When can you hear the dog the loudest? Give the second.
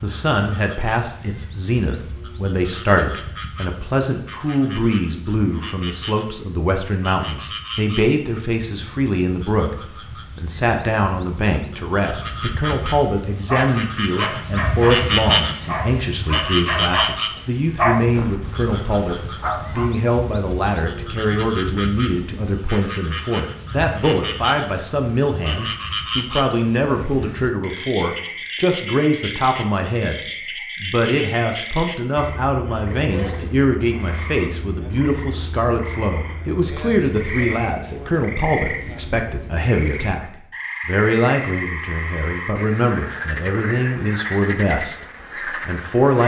18 s.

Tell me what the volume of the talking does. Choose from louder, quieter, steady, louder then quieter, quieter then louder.
steady.